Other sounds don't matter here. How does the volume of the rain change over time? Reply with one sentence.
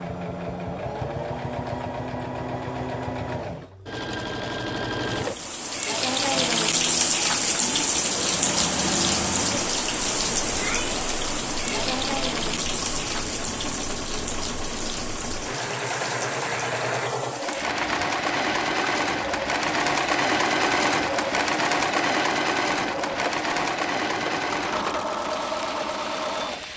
The loudness of the rain goes down.